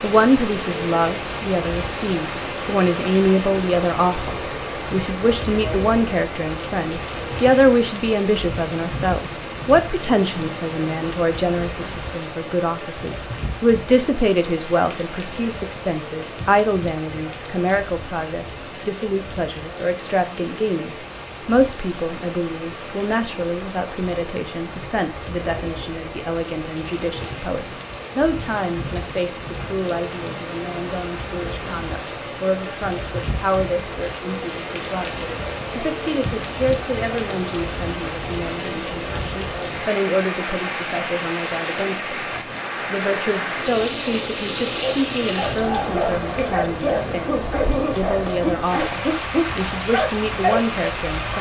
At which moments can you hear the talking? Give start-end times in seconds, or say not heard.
0.0-42.1, 42.9-51.3.